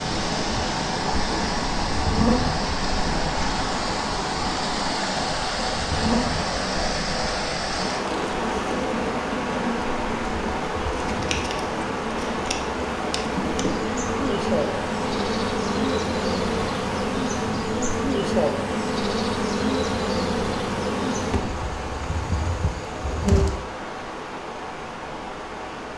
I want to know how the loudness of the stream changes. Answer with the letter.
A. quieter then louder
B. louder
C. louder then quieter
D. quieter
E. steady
D.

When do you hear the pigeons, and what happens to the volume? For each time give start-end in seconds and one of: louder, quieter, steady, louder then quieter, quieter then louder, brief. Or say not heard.
not heard.